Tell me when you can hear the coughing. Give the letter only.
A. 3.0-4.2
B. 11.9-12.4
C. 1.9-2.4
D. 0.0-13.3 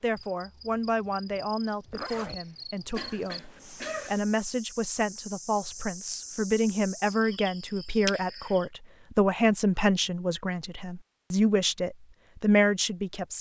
A.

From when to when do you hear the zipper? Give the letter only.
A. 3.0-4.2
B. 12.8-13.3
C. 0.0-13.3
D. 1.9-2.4
D.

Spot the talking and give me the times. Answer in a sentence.
You can hear the talking from 0.0 to 13.3 s.